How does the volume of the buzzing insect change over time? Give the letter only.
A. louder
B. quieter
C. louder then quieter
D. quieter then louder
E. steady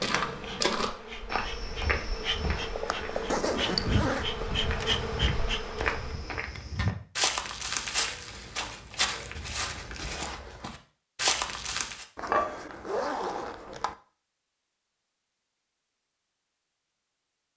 A.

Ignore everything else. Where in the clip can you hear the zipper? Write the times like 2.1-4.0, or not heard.
2.9-4.2, 6.3-7.0, 12.2-13.9.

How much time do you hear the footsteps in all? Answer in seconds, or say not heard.
12 s.